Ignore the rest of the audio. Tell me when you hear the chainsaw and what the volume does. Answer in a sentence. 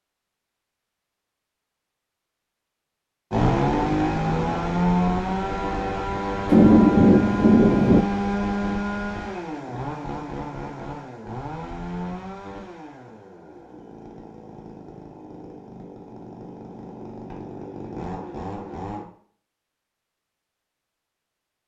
The chainsaw can be heard from 3.3 to 19.1 s, getting quieter then louder.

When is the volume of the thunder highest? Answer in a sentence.
The loudest moment of the thunder is at 7 seconds.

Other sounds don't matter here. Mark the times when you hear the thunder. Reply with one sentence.
You can hear the thunder from 6.5 to 8.1 s.